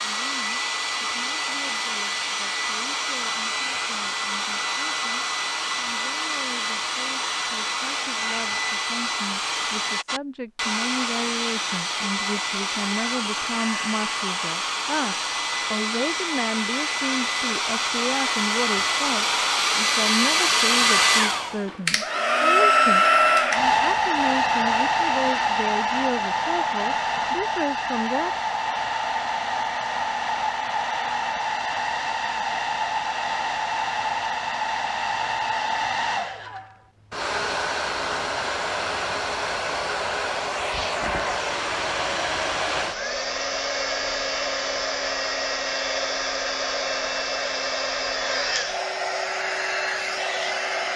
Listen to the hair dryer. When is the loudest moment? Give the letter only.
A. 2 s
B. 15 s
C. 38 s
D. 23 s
D.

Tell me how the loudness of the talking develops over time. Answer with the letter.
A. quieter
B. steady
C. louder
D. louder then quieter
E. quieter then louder
C.